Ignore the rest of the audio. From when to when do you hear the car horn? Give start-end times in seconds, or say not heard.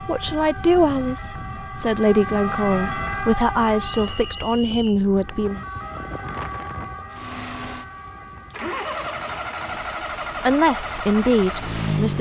not heard.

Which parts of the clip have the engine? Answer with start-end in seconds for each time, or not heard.
7.1-12.1.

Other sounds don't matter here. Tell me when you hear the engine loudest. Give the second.
12 s.